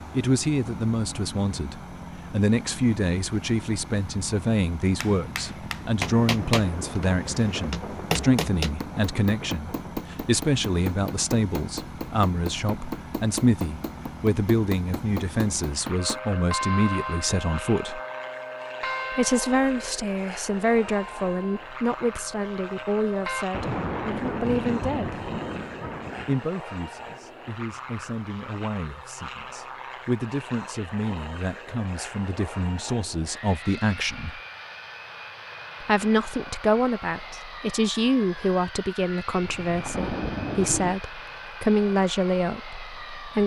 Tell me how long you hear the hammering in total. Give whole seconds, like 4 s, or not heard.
11 s.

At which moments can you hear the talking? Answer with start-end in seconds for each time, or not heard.
0.1-18.0, 19.1-25.2, 26.2-34.4, 35.8-43.4.